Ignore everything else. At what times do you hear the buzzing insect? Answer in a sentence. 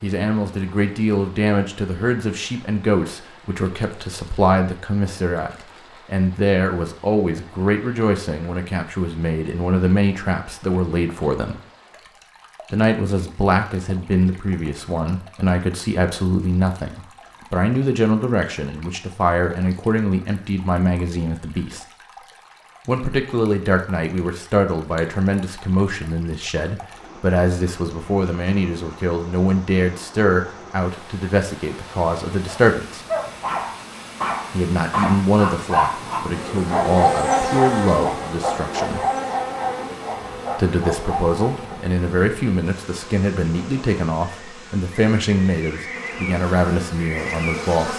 The buzzing insect can be heard from 36.2 to 47.9 s.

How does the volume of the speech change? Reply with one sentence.
The volume of the speech stays about the same.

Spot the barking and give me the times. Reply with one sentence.
The barking can be heard from 32.5 to 41.8 s.